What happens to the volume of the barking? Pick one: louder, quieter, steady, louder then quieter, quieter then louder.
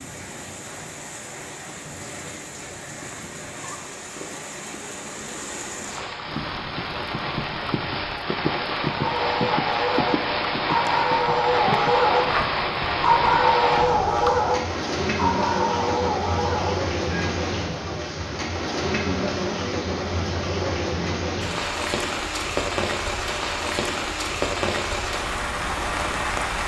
louder then quieter.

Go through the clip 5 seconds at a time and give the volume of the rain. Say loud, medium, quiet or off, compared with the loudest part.
medium, loud, loud, loud, loud, loud.